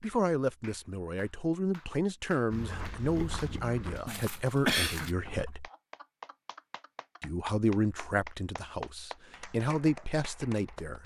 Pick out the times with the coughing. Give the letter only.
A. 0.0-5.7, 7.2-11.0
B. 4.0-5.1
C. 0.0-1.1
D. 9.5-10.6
B.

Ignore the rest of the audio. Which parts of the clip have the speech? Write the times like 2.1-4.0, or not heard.
0.0-5.7, 7.2-11.0.